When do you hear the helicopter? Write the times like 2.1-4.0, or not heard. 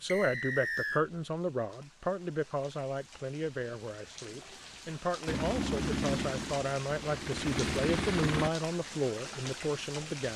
5.2-8.5.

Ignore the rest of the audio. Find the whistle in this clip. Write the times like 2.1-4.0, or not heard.
0.1-1.1.